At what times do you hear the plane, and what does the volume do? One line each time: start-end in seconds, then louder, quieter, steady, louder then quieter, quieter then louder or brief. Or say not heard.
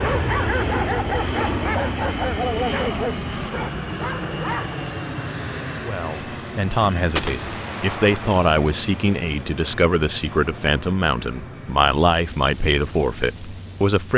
0.0-14.1 quieter.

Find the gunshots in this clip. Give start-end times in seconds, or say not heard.
7.2-8.6.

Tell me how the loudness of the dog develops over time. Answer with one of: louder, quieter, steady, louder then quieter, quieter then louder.
quieter.